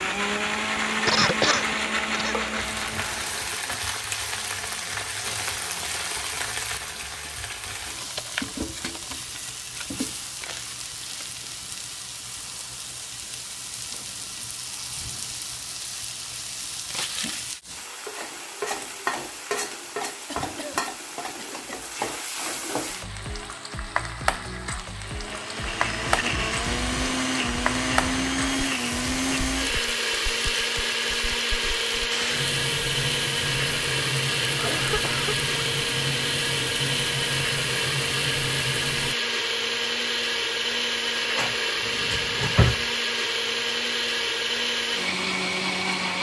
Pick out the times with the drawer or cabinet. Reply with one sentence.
You can hear the drawer or cabinet from 41.3 to 42.9 s.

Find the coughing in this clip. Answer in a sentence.
The coughing can be heard from 1.1 to 2.4 s, from 20.2 to 21.6 s and from 34.5 to 35.4 s.